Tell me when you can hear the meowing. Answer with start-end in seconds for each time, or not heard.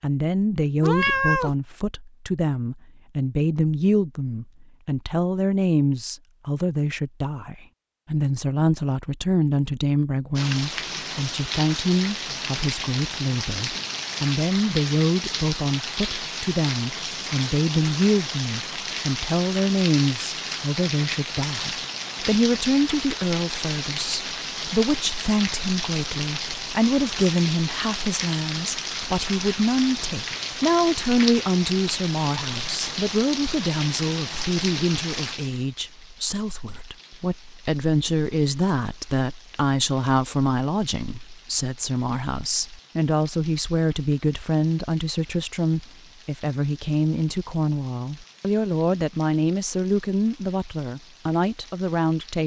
0.8-1.6.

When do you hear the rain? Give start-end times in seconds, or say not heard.
10.3-52.4.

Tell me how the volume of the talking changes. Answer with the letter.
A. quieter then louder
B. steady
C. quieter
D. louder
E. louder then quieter
B.